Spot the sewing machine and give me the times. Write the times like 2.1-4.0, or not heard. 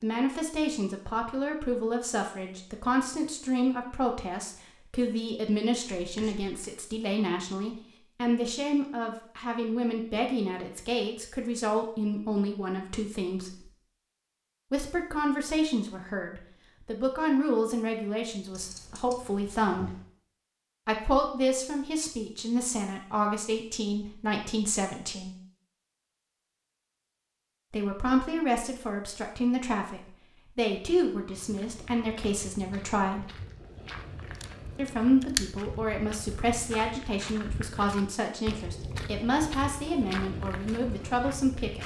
not heard.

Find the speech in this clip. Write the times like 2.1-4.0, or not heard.
0.0-13.7, 14.7-19.9, 20.9-25.4, 27.7-33.3, 34.8-41.8.